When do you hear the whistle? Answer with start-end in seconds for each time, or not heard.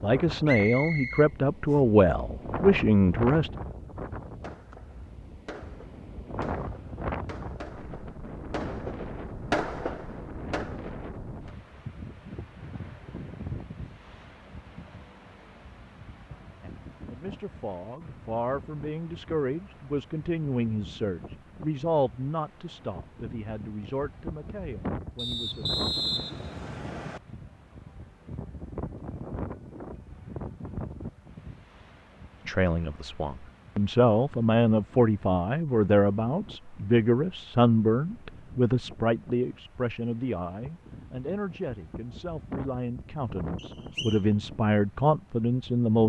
0.5-1.8, 25.1-27.2, 43.5-44.2.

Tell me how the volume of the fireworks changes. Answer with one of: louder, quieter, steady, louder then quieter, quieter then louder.
louder then quieter.